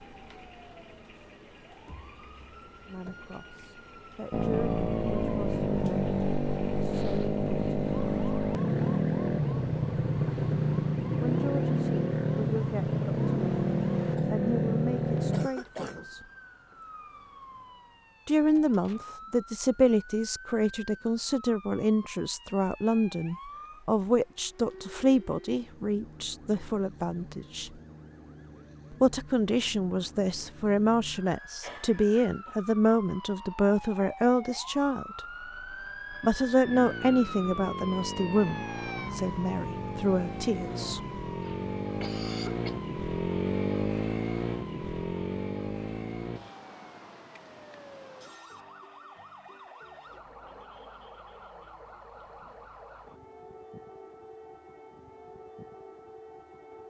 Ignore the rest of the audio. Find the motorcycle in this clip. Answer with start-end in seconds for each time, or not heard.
4.3-15.5, 36.7-46.4.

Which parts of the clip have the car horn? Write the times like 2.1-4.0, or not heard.
not heard.